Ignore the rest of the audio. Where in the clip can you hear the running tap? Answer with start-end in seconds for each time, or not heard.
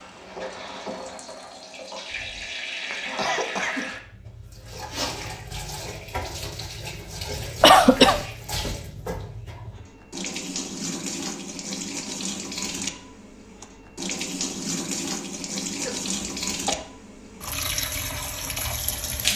0.0-19.3.